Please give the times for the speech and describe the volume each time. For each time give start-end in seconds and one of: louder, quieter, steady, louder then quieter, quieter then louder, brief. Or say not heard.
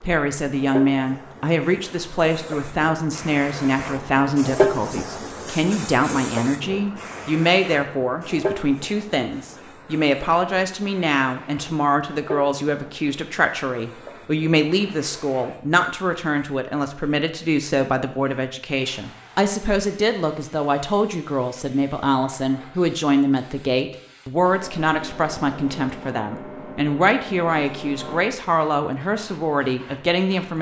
0.0-30.5 steady.